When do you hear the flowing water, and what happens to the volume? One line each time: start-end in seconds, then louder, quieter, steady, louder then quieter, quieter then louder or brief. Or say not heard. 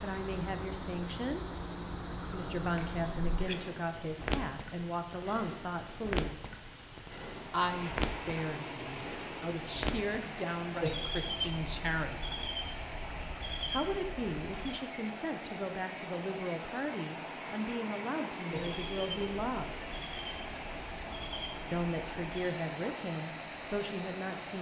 7.3-24.5 steady.